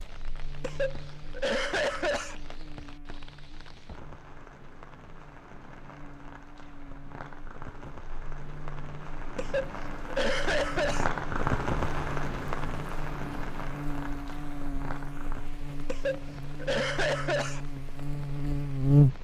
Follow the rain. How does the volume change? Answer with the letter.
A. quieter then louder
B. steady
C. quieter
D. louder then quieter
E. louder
D.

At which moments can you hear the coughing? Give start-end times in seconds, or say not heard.
0.6-2.4, 9.3-11.1, 15.8-17.6.